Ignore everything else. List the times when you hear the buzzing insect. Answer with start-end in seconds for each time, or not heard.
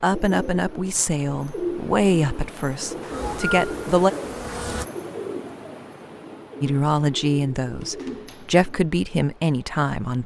3.0-4.8.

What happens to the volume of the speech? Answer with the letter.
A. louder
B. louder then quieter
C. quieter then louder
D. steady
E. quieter
D.